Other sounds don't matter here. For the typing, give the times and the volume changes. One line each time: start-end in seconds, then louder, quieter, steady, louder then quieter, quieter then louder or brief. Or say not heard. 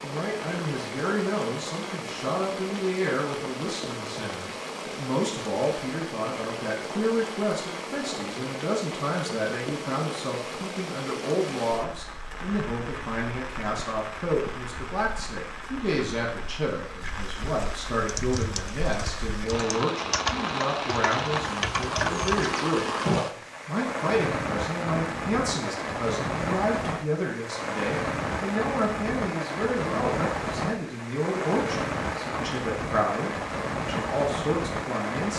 18.1-23.2 louder.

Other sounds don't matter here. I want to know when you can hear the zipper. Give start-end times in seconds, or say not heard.
not heard.